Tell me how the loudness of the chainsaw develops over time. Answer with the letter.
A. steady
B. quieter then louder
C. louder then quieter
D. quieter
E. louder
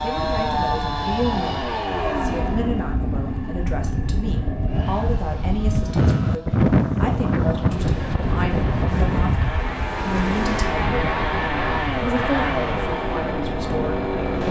B.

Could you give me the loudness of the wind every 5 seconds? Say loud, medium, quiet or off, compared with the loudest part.
medium, loud, medium.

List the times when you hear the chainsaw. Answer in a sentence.
The chainsaw can be heard from 0.0 to 14.4 s.